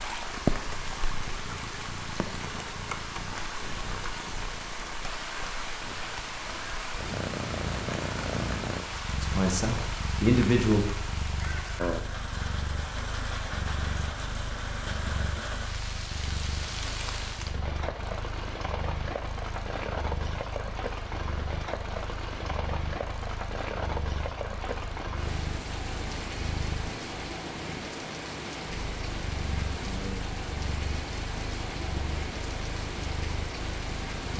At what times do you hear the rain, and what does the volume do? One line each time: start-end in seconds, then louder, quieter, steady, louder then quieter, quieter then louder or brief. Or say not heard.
0.0-34.3 steady.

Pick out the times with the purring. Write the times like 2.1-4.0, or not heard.
0.0-34.3.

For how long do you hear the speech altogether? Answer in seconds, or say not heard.
2 s.